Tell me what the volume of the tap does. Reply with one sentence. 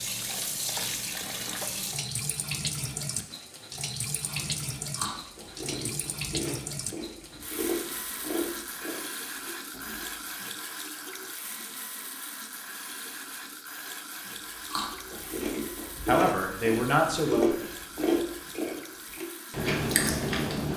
The loudness of the tap goes down.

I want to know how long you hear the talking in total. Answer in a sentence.
You can hear the talking for 2 seconds altogether.